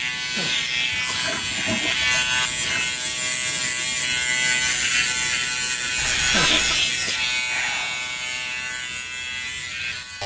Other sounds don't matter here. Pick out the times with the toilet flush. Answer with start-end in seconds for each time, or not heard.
0.9-2.9, 6.0-6.8.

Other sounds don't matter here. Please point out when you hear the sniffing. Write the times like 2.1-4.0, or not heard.
0.1-1.9, 6.2-8.0.